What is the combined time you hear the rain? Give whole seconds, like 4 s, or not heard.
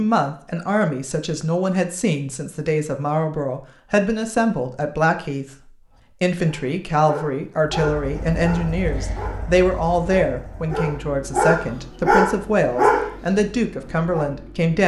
not heard.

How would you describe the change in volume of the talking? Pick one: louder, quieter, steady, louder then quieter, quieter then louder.
steady.